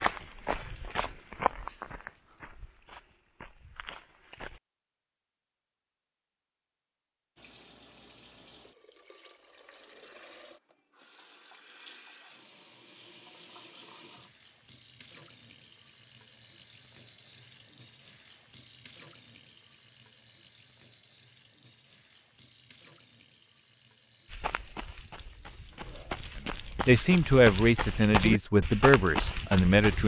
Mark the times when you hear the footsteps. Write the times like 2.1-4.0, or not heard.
0.0-4.6, 24.3-30.0.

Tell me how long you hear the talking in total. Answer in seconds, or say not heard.
3 s.